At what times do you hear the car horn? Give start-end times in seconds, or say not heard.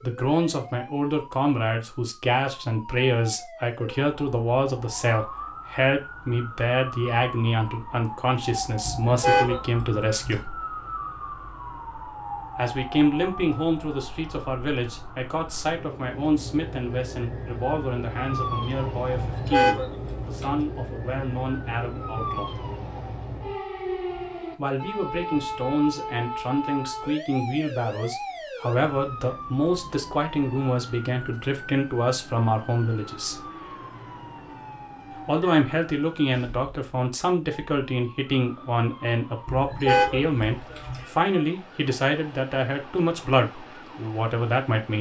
8.8-10.4, 19.1-20.6, 39.5-41.0.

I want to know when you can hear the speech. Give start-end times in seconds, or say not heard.
0.0-10.6, 12.6-22.6, 24.6-33.5, 35.2-44.9.